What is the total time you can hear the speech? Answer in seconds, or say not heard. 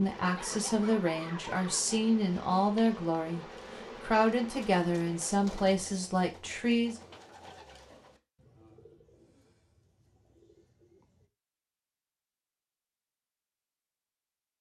7 s.